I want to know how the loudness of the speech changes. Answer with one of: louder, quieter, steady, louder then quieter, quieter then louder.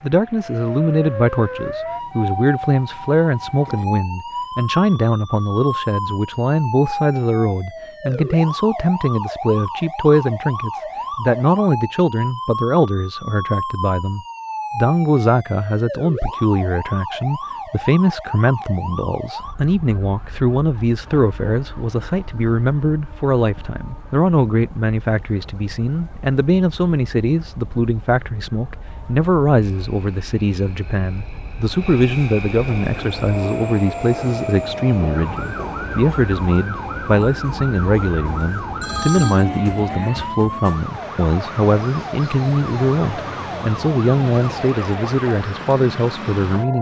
steady.